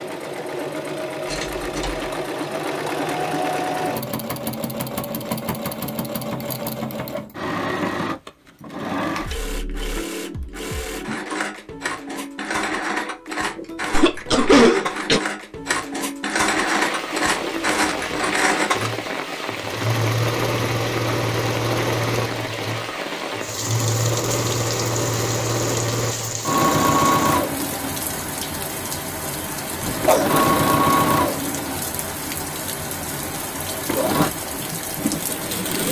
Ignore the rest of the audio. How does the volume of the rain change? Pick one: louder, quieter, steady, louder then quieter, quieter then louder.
steady.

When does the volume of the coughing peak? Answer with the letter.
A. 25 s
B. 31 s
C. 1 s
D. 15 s
D.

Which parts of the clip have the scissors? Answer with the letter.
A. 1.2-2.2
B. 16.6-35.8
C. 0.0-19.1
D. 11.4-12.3
A.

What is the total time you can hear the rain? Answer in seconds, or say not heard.
19 s.